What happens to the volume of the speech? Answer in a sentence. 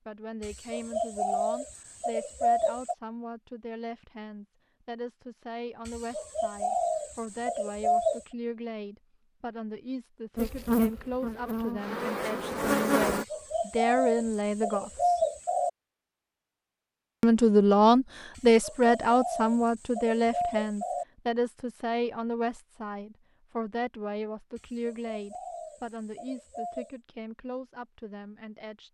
The volume of the speech goes up, then down.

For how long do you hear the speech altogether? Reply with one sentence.
You can hear the speech for 27 seconds altogether.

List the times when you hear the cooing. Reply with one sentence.
You can hear the cooing from 0.4 to 3.0 s, from 5.8 to 8.2 s, from 13.1 to 15.7 s, from 18.4 to 21.1 s and from 24.6 to 26.9 s.